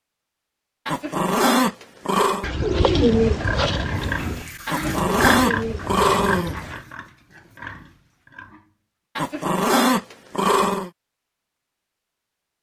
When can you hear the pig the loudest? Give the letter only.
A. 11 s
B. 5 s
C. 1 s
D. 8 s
B.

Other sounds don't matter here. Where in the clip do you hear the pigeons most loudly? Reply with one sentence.
The volume of the pigeons peaks at 3 seconds.